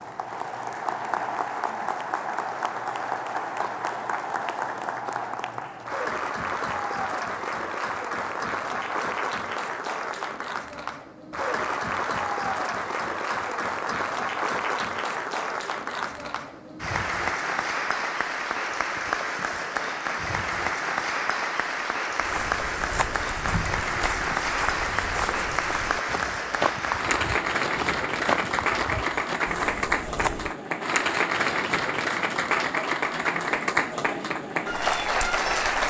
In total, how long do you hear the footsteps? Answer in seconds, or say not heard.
8 s.